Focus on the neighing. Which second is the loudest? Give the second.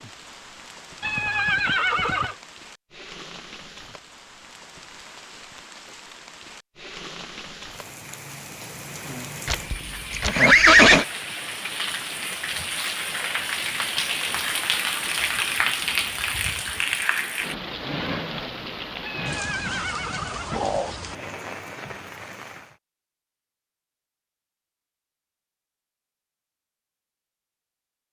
11 s.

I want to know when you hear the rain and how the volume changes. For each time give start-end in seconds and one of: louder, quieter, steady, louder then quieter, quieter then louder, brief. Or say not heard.
0.0-22.8 louder then quieter.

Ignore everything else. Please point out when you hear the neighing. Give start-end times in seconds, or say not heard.
1.0-2.4, 9.4-11.1, 19.0-21.0.